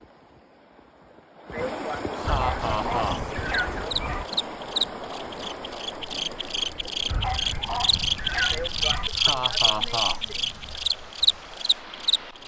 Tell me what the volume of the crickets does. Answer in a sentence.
The loudness of the crickets goes up.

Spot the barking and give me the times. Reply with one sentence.
You can hear the barking from 2.2 to 4.2 s and from 7.0 to 9.1 s.